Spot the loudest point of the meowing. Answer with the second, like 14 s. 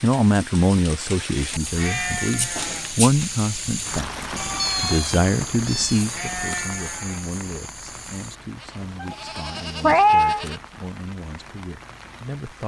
10 s.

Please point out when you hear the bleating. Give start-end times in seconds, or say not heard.
1.4-10.6.